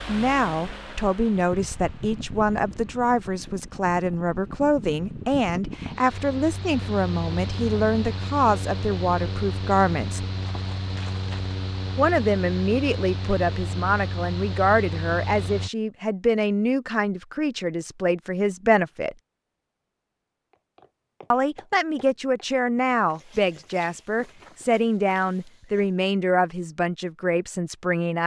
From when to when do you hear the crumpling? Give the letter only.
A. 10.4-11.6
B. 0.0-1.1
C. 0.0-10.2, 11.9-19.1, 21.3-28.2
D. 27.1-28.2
A.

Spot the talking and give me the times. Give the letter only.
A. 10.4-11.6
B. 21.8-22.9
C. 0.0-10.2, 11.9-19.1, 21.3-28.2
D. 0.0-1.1
C.